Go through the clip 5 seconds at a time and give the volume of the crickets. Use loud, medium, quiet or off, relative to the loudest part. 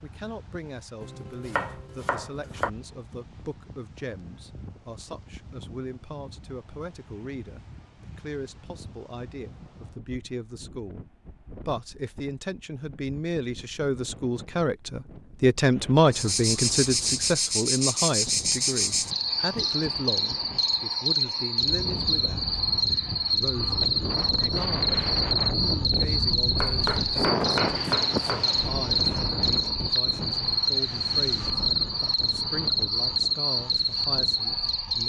off, off, off, loud, loud, loud, loud.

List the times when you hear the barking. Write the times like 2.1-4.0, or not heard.
not heard.